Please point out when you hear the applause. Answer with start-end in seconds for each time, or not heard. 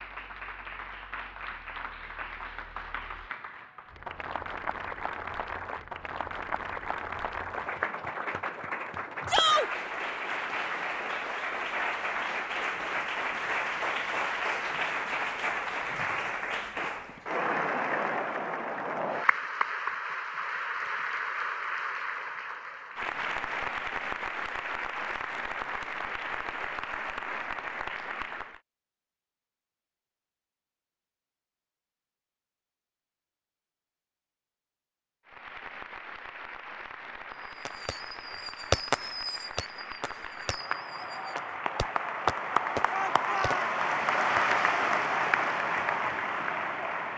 0.0-28.6, 35.2-47.1.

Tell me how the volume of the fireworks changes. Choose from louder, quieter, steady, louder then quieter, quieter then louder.
quieter then louder.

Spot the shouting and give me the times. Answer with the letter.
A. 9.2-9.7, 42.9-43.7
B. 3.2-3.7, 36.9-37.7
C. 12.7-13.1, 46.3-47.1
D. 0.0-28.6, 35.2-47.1
A.